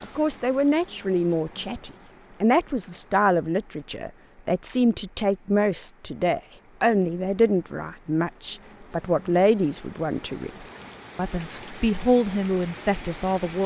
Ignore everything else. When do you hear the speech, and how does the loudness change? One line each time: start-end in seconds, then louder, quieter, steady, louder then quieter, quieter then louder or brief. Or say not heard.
0.0-13.6 steady.